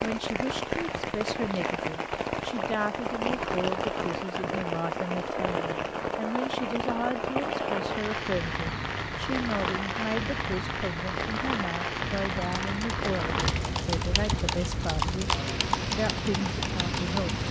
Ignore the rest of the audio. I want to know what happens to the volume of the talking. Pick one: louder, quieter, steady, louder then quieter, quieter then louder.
steady.